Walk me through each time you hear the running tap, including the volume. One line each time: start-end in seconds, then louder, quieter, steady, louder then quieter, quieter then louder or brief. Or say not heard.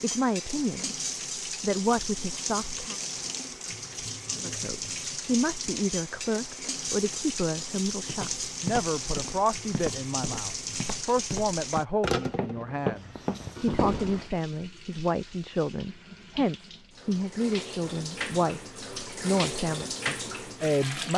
0.0-21.1 quieter then louder.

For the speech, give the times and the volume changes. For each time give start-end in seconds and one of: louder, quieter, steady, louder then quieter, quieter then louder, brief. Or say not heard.
0.0-3.0 brief
4.3-21.1 steady.